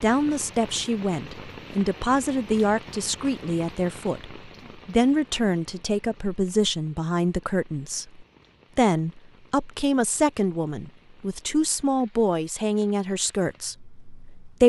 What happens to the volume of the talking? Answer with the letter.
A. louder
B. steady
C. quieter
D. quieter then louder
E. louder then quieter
B.